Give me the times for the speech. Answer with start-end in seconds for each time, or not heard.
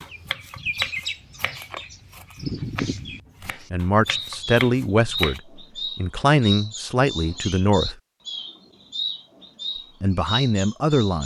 3.7-8.0, 10.0-11.2.